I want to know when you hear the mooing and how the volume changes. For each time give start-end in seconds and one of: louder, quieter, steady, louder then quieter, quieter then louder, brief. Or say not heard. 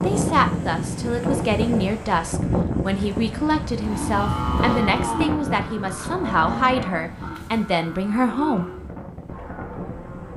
3.8-10.3 quieter.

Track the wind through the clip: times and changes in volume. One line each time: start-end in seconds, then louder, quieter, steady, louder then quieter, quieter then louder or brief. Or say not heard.
0.0-10.3 quieter.